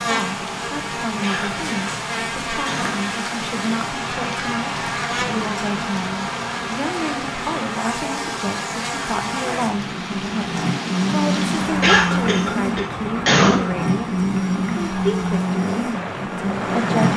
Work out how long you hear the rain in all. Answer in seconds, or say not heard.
17 s.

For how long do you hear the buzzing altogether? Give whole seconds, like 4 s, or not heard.
17 s.